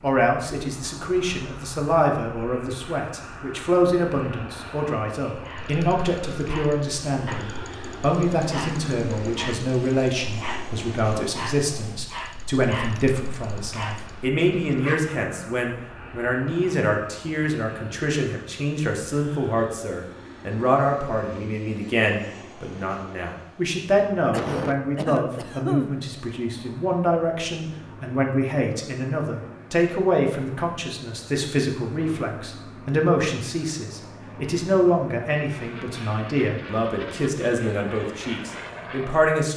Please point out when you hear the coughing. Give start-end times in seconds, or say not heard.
24.3-26.1.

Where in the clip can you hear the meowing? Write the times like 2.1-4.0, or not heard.
not heard.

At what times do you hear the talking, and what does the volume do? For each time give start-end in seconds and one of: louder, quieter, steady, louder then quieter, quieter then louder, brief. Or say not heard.
0.0-39.5 steady.